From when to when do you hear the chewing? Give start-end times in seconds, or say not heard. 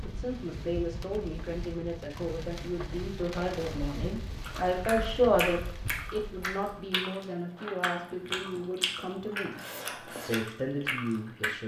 4.4-11.5.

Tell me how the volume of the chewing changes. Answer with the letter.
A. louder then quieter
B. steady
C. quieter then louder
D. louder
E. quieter
B.